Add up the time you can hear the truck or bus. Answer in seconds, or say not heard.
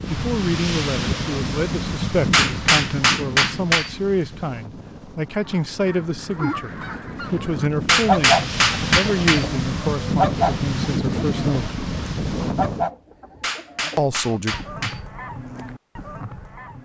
not heard.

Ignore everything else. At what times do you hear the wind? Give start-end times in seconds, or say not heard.
0.0-12.9.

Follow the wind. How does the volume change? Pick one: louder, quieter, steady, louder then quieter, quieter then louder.
quieter then louder.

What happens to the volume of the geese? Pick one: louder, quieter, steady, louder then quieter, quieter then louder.
louder then quieter.